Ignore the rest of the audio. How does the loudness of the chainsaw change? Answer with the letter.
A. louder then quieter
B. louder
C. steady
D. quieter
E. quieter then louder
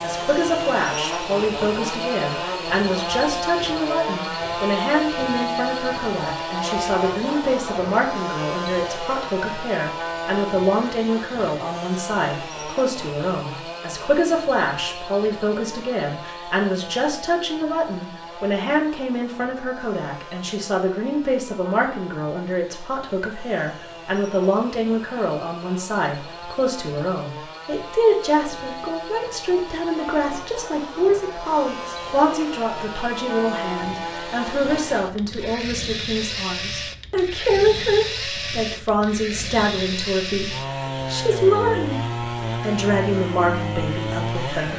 E.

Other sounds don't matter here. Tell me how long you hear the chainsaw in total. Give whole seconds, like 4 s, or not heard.
45 s.